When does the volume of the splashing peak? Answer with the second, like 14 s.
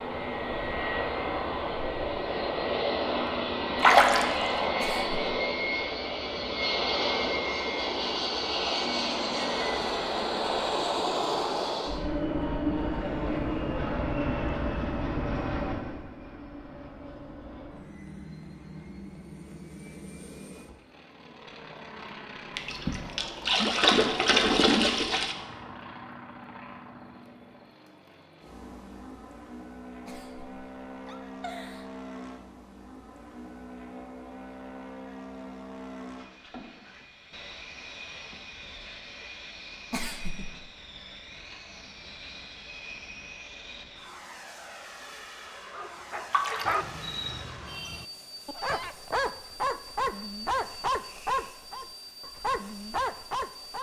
4 s.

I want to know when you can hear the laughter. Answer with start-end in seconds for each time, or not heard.
4.8-5.4, 30.1-31.9, 39.9-40.5.